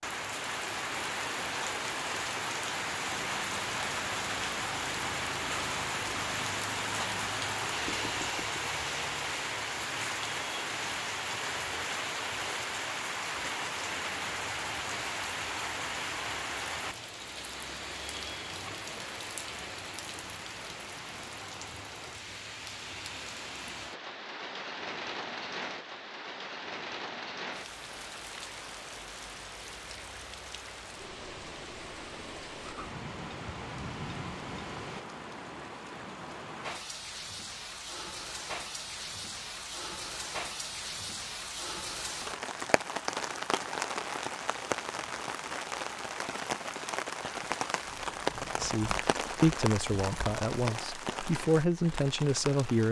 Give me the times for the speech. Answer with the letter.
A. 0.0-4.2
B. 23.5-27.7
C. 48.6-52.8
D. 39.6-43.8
C.